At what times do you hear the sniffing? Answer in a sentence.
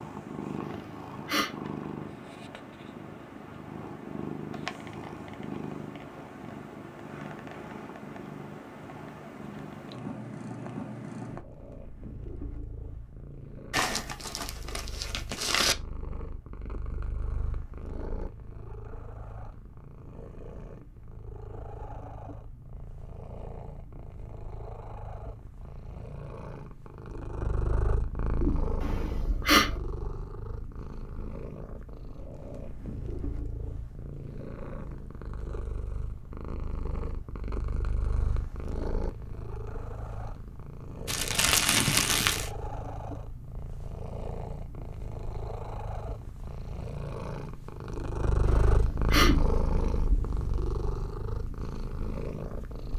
You can hear the sniffing from 0.6 to 1.6 s, from 28.8 to 29.7 s and from 48.5 to 49.4 s.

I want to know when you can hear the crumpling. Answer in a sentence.
The crumpling can be heard from 13.7 to 15.8 s and from 41.0 to 42.5 s.